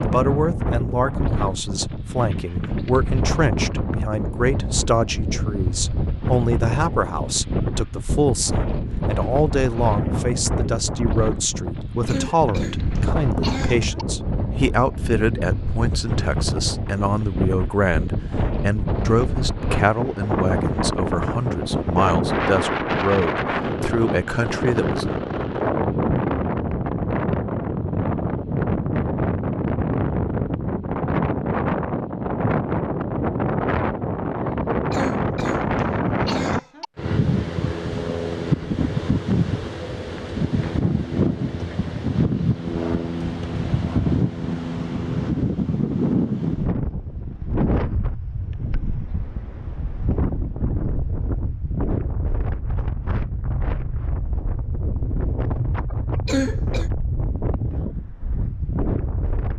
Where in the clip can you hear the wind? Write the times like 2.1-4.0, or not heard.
0.0-59.5.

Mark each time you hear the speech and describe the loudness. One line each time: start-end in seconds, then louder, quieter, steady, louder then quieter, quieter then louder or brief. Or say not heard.
0.0-25.1 steady.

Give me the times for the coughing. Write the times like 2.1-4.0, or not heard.
12.1-14.1, 34.9-36.9, 56.2-56.9.